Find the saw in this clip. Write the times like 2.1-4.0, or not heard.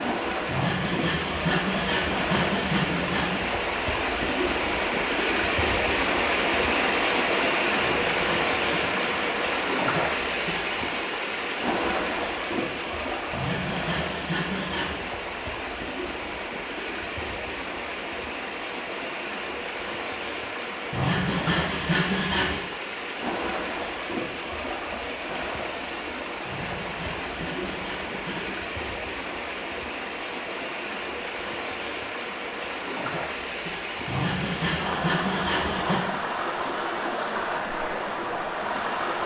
0.5-3.5, 7.8-9.2, 13.3-15.0, 20.9-22.6, 26.4-28.6, 34.0-36.0.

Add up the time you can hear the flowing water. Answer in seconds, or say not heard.
39 s.